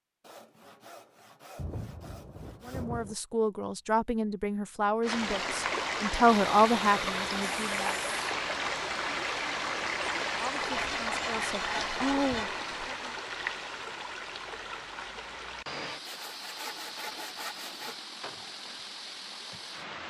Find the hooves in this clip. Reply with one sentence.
The hooves can't be heard in this clip.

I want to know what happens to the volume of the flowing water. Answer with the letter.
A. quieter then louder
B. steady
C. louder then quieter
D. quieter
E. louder
D.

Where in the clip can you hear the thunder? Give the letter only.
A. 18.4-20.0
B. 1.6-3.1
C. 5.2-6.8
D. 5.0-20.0
B.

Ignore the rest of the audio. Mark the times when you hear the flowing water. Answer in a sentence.
The flowing water can be heard from 5.0 to 20.0 s.